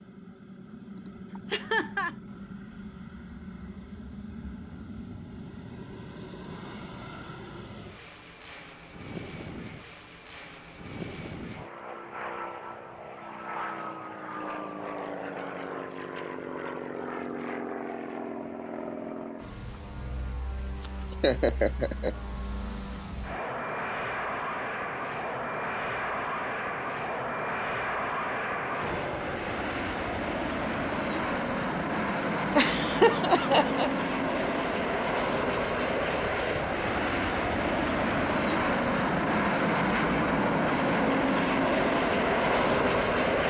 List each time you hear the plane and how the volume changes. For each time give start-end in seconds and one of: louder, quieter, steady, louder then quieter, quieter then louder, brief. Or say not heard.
0.0-43.4 louder.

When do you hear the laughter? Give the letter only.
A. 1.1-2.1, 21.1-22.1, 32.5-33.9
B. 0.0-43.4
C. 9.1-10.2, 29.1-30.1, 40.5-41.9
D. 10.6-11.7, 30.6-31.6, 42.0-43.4
A.